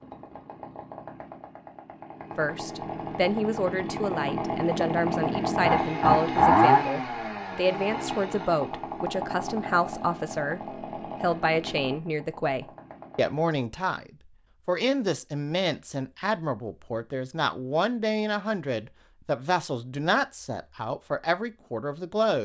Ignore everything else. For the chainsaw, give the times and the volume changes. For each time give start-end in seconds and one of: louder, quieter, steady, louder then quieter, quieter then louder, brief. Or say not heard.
0.0-13.4 louder then quieter.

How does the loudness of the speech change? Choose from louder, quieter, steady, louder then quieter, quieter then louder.
steady.